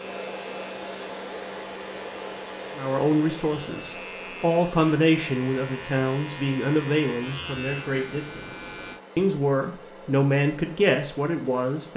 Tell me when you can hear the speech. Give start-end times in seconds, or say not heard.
2.8-11.9.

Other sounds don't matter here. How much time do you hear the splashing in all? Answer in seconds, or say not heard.
not heard.